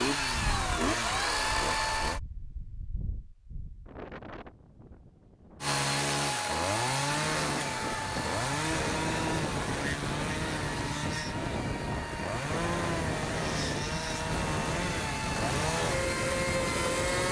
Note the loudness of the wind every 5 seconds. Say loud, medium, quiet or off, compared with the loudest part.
medium, loud, loud, loud.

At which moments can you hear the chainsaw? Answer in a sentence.
You can hear the chainsaw from 0.0 to 2.2 s and from 5.6 to 17.2 s.